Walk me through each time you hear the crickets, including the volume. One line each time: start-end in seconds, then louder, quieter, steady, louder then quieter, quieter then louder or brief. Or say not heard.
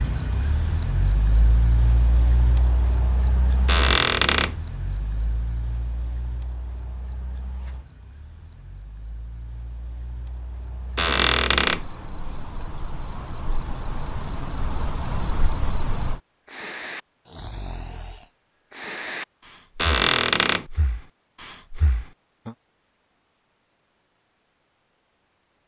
0.0-16.2 quieter then louder.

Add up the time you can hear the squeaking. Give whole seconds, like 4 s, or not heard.
3 s.